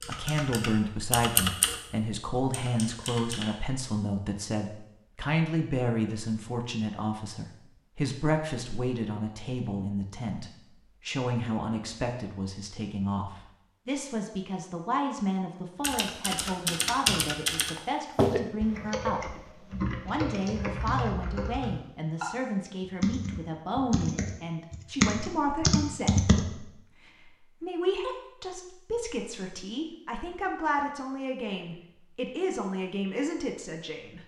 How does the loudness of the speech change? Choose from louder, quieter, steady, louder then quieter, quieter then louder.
steady.